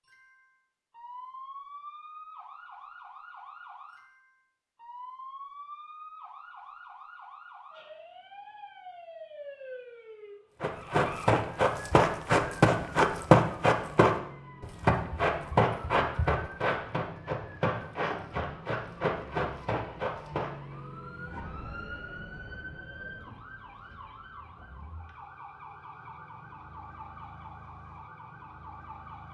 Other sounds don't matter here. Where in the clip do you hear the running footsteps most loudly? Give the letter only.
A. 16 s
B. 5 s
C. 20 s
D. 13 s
D.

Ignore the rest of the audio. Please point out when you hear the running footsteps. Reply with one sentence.
You can hear the running footsteps from 10.6 to 20.8 s.